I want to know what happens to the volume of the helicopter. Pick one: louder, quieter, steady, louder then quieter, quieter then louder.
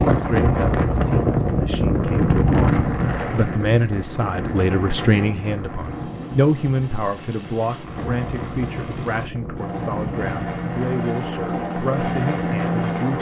louder.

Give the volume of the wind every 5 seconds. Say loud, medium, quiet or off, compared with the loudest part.
loud, medium, medium.